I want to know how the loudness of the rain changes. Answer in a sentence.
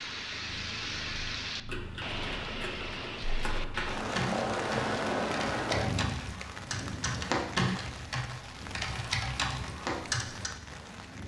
The volume of the rain goes down.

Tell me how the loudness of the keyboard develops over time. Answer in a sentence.
The loudness of the keyboard goes up.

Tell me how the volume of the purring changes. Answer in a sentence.
The volume of the purring goes up, then down.